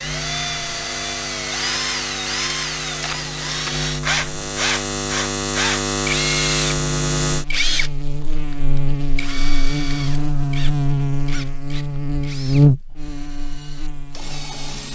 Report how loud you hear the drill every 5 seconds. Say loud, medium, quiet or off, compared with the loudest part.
loud, loud, quiet.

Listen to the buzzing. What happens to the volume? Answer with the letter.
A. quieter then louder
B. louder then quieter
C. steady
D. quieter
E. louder
E.